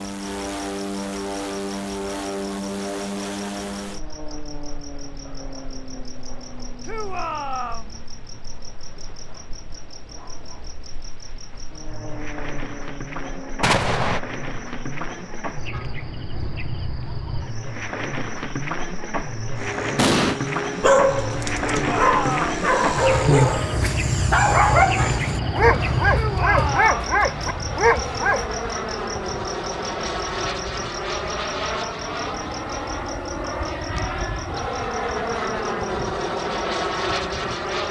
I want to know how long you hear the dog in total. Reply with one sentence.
You can hear the dog for 8 seconds altogether.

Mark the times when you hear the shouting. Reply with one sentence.
The shouting can be heard from 6.8 to 7.9 s, from 21.6 to 22.4 s and from 26.1 to 27.1 s.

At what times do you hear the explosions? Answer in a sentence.
You can hear the explosions from 13.6 to 14.2 s and from 19.9 to 20.4 s.